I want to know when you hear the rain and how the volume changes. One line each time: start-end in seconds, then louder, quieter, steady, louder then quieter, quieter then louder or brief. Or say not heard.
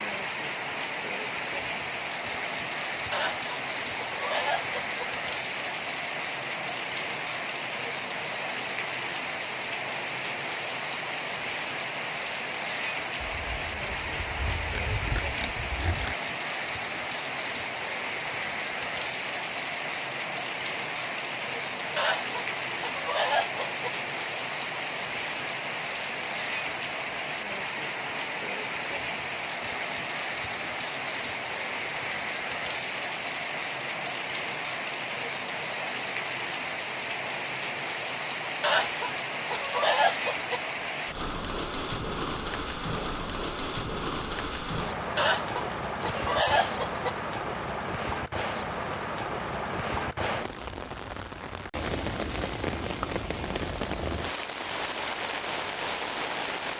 0.0-56.7 steady.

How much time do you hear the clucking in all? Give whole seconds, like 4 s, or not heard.
8 s.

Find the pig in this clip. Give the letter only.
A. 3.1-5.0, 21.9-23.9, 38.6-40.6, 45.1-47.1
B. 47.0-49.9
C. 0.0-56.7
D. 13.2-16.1
D.